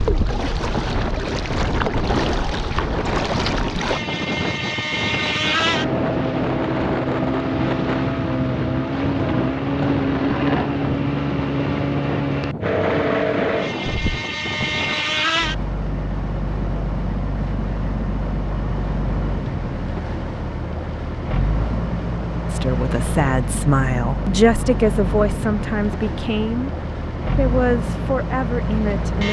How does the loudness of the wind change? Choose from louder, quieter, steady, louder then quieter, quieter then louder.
steady.